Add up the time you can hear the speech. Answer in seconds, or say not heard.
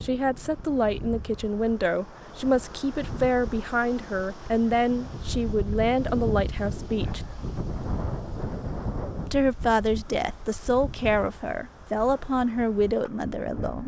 12 s.